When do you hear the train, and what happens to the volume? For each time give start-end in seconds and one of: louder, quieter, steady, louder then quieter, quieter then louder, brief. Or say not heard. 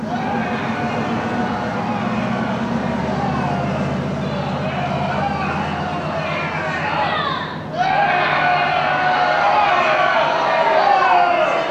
0.0-11.6 quieter.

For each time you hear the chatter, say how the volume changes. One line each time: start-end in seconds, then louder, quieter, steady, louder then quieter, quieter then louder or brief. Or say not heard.
0.0-11.6 louder.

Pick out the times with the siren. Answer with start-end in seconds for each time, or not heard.
not heard.